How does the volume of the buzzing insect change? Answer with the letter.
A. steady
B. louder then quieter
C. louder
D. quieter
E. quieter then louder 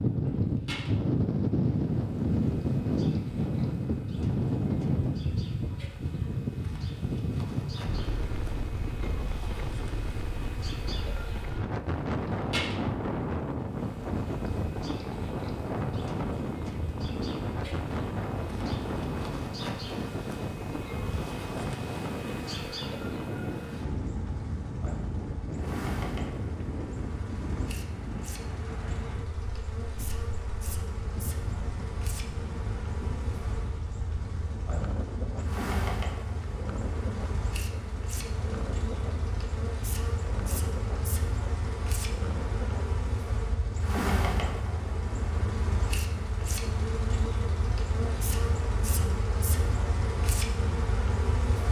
C.